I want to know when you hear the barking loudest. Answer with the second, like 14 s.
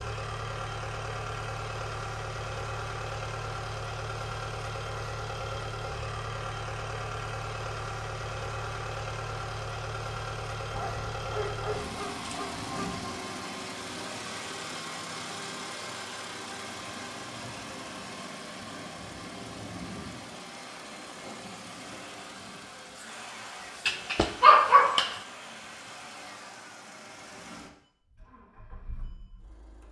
25 s.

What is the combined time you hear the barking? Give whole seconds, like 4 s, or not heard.
4 s.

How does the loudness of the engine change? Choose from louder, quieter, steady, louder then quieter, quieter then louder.
quieter.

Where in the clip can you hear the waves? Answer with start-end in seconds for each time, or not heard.
not heard.